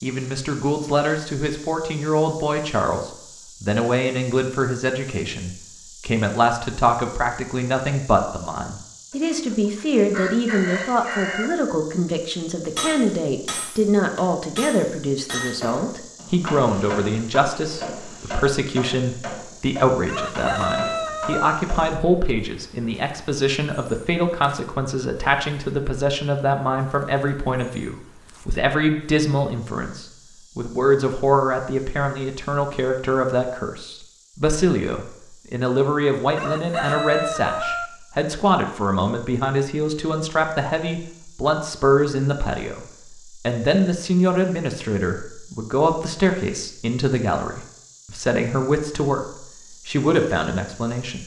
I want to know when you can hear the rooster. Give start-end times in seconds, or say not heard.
9.1-11.6, 20.1-21.6, 36.4-37.9.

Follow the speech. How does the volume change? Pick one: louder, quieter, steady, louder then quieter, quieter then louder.
steady.